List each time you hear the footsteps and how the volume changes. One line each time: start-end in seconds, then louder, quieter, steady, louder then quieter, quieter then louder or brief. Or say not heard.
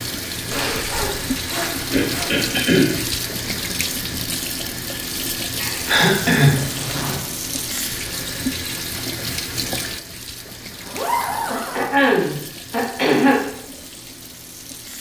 not heard.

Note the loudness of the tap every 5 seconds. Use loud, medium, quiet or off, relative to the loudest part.
loud, loud, medium.